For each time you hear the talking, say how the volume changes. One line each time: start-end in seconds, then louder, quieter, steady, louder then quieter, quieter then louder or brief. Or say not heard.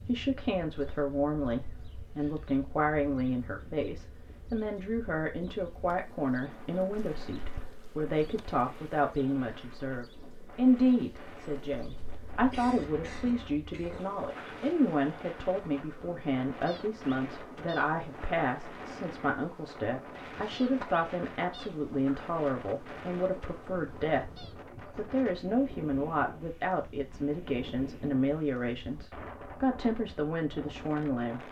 0.1-31.4 steady.